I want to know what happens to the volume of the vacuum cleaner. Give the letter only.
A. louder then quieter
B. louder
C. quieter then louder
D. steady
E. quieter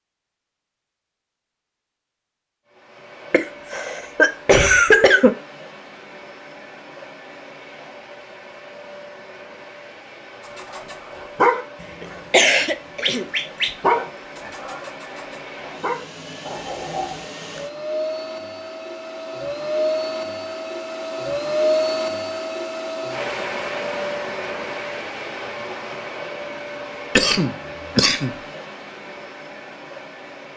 A.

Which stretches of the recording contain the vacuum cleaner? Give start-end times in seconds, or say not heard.
2.6-30.5.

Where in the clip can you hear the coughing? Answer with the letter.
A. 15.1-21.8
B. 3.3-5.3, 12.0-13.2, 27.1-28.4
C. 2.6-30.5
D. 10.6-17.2
B.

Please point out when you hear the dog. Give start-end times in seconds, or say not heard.
10.6-17.2.